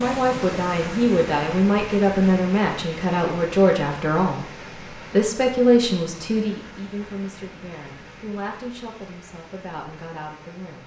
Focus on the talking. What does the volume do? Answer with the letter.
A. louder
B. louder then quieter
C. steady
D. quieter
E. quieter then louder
D.